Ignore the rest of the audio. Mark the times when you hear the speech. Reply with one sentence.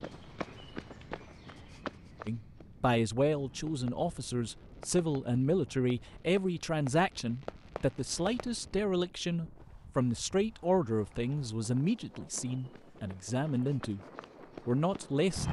You can hear the speech from 2.2 to 14.0 s and from 14.7 to 15.4 s.